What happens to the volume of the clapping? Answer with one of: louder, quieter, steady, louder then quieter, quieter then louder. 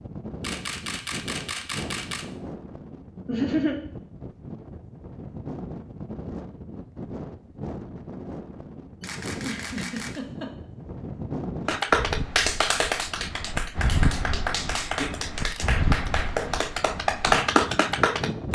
quieter then louder.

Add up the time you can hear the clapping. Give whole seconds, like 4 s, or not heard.
7 s.